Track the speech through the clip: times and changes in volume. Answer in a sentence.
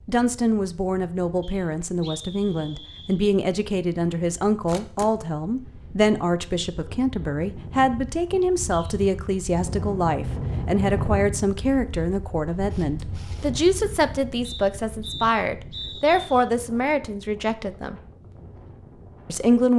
The speech can be heard from 0.1 to 18.0 s, at a steady volume; and briefly from 19.2 to 19.7 s.